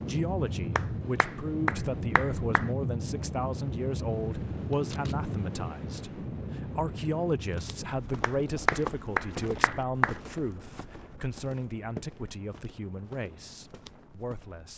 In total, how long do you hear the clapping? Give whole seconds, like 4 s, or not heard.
4 s.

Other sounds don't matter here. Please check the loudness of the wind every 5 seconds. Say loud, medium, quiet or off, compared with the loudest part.
loud, loud, quiet.